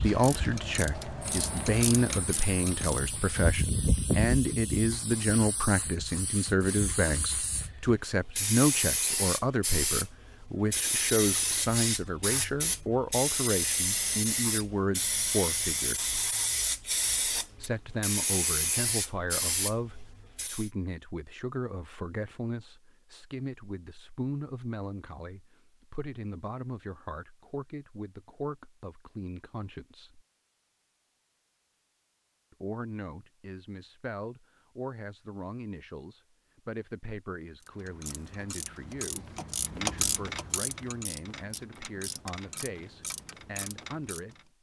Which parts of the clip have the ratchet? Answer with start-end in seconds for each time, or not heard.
0.0-3.4, 37.6-44.4.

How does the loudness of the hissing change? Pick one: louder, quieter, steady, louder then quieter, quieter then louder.
quieter then louder.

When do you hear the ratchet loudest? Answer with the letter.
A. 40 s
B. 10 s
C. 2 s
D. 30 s
A.